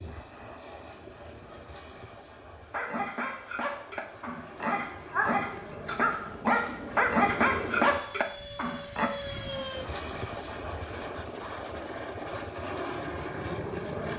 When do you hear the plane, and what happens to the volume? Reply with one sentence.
You can hear the plane from 0.0 to 14.1 s, getting louder.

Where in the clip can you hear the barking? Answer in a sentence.
The barking can be heard from 2.7 to 9.1 s.